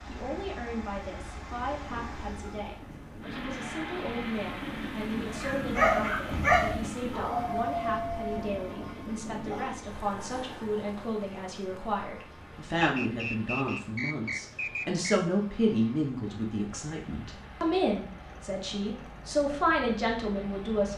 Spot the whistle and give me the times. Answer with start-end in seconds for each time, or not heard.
12.8-15.1.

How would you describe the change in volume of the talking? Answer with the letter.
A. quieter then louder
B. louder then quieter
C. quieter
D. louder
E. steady
D.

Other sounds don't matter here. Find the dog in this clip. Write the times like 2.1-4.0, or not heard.
5.3-10.8.